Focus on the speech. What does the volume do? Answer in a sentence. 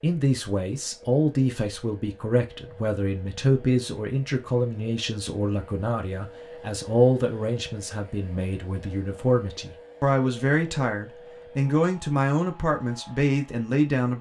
The loudness of the speech stays about the same.